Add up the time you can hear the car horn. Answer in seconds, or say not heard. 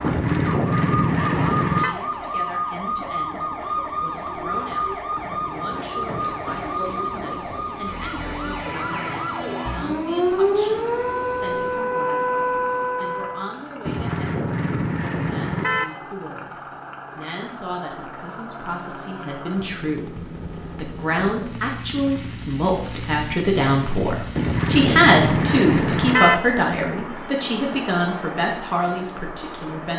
6 s.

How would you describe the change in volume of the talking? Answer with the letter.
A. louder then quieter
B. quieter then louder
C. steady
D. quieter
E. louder
E.